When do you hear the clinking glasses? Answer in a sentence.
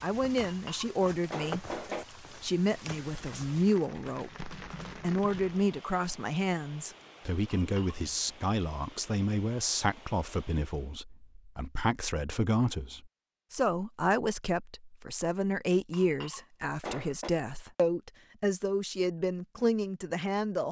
You can hear the clinking glasses from 0.5 to 2.0 s, from 7.5 to 8.0 s and from 15.9 to 17.3 s.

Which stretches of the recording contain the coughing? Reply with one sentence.
The coughing can't be heard in this clip.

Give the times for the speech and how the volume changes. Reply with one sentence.
The speech can be heard from 0.0 to 20.6 s, at a steady volume.